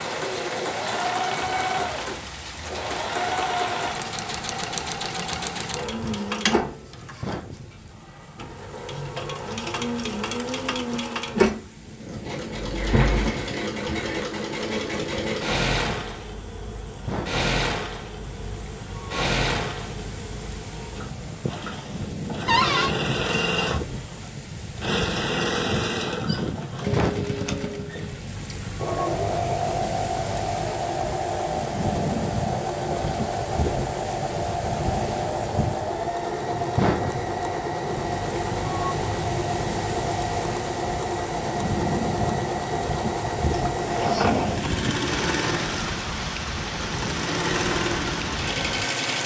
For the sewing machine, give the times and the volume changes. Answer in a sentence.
The sewing machine can be heard from 0.0 to 49.2 s, at a steady volume.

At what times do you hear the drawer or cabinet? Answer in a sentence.
You can hear the drawer or cabinet from 12.8 to 14.2 s, from 22.4 to 22.9 s and from 43.8 to 44.9 s.